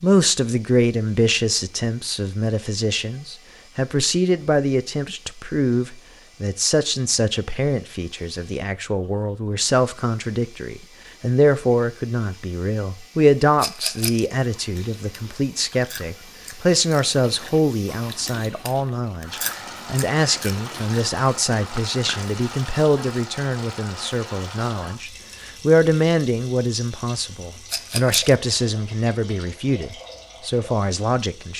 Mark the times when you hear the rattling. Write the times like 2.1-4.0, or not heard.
13.6-14.3, 27.6-28.4.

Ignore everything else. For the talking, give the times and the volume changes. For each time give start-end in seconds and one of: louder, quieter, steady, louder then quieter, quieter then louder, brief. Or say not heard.
0.0-31.5 steady.